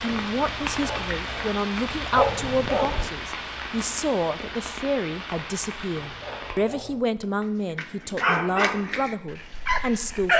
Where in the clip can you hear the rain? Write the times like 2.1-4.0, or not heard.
0.0-6.5.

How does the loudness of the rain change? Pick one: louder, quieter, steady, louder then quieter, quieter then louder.
quieter.